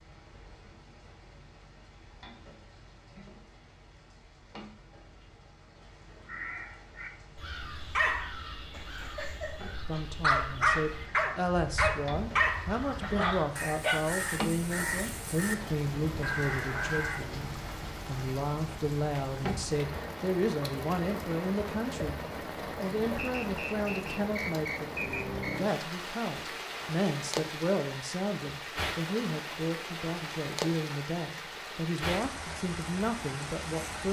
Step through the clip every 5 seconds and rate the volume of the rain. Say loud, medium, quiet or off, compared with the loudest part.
quiet, quiet, medium, loud, loud, loud, loud.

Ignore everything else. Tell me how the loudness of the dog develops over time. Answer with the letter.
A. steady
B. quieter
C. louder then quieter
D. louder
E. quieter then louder
C.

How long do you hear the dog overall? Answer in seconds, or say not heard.
6 s.